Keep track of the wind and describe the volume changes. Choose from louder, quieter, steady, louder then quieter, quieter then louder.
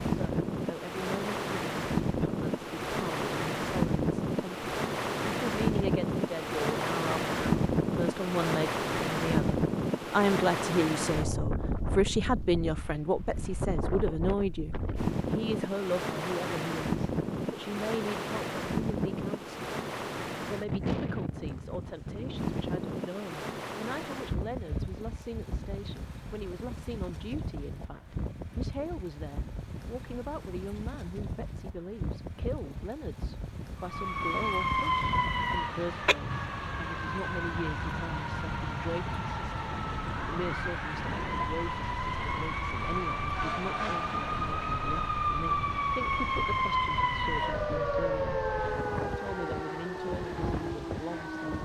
quieter.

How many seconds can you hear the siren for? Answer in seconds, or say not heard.
18 s.